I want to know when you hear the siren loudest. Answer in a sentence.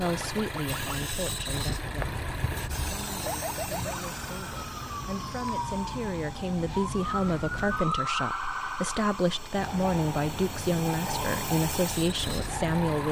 The loudest moment of the siren is at 8 seconds.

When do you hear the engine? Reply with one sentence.
The engine can be heard from 0.0 to 13.0 s.